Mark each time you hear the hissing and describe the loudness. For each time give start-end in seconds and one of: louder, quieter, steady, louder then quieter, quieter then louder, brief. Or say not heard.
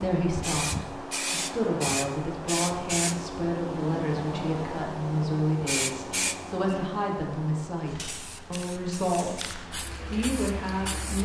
0.0-11.2 quieter.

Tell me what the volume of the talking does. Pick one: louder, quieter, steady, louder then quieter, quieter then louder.
steady.